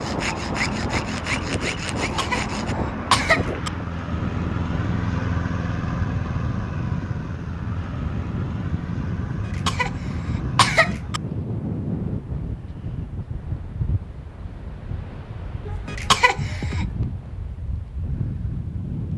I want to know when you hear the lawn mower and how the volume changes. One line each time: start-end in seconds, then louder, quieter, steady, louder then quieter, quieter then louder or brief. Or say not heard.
0.1-11.3 louder then quieter.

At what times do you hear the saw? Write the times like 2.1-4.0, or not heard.
0.0-2.8.